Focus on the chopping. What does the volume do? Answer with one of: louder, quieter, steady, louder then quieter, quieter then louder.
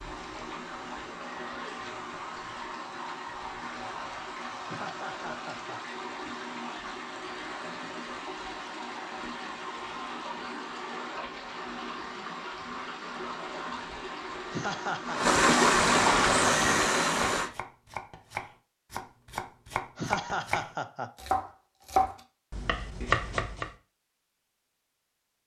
louder.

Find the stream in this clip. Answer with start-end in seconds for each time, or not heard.
0.0-17.5.